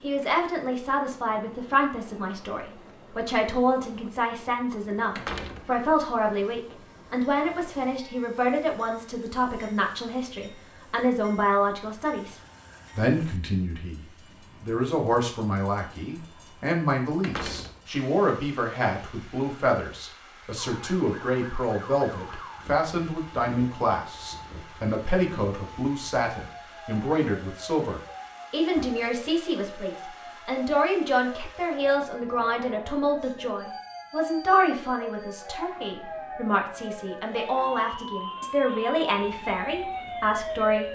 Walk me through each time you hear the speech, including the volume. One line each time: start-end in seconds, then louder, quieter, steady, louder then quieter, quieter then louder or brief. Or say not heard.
0.0-40.9 steady.